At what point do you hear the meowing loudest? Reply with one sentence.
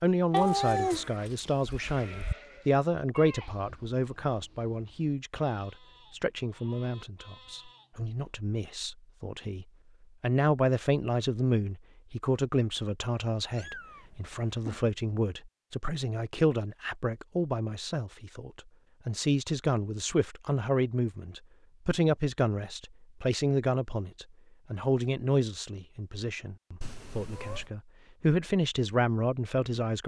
The volume of the meowing peaks at 1 second.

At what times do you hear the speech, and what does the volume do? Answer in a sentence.
You can hear the speech from 0.0 to 30.0 s, at a steady volume.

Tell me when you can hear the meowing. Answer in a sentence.
You can hear the meowing from 0.3 to 2.4 s, from 13.5 to 14.9 s and from 26.8 to 27.7 s.